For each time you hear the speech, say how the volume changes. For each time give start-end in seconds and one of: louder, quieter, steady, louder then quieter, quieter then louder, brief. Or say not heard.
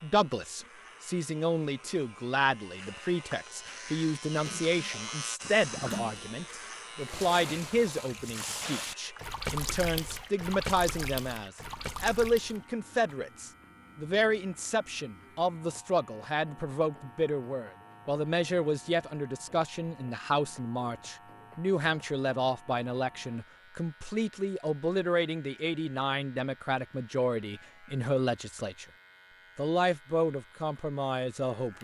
0.0-28.9 steady
29.6-31.7 brief.